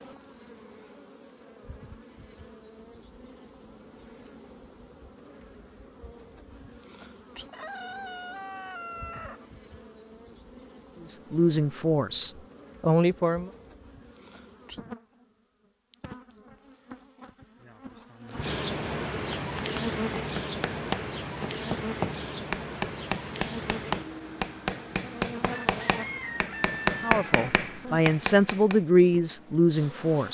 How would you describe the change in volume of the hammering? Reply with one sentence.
The loudness of the hammering goes up.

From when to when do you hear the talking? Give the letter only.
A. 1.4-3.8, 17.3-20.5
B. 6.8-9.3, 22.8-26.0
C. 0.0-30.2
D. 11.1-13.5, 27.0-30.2
D.